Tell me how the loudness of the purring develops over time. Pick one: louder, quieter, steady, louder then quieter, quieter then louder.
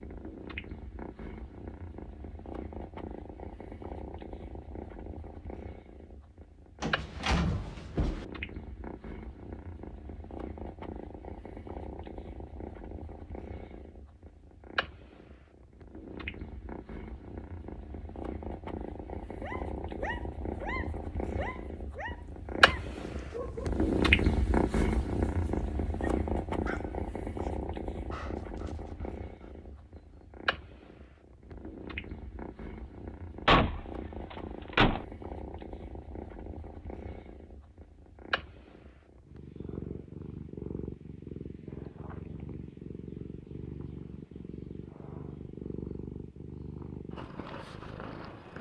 louder then quieter.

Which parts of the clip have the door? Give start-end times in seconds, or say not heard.
6.8-8.2, 33.5-35.0.